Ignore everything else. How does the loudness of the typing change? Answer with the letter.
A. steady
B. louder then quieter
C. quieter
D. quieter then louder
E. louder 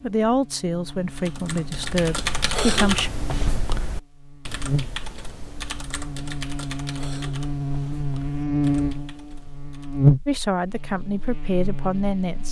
C.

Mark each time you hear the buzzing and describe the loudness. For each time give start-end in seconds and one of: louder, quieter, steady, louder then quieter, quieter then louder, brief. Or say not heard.
0.0-12.4 louder.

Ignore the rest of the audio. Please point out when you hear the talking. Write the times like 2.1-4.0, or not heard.
0.0-3.1, 10.2-12.4.